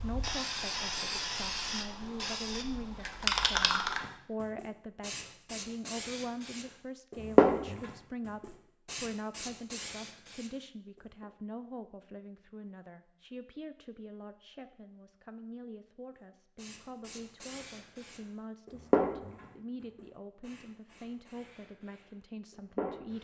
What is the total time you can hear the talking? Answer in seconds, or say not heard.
23 s.